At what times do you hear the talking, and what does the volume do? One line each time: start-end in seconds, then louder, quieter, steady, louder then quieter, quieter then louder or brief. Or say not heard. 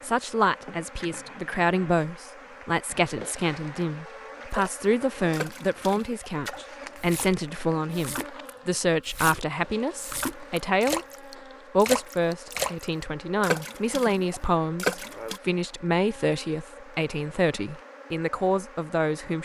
0.0-11.1 steady
11.7-19.3 steady.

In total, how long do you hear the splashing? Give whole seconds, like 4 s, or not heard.
11 s.